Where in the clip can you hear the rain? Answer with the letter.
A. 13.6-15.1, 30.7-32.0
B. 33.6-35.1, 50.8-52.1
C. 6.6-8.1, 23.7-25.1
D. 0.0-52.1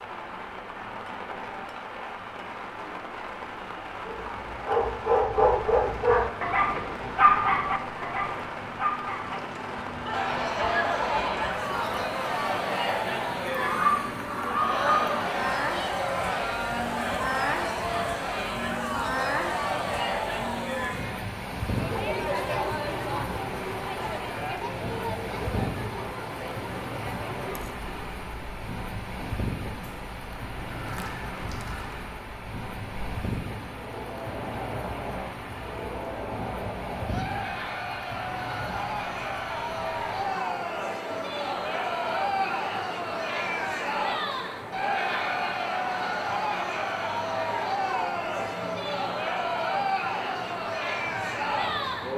D.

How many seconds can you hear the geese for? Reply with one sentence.
The geese can be heard for 3 seconds in total.